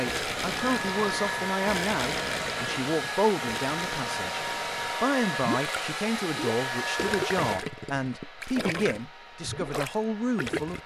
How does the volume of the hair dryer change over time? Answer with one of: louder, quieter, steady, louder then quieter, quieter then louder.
quieter.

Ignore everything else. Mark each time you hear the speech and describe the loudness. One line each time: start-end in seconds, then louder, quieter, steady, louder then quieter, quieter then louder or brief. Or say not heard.
0.0-10.8 steady.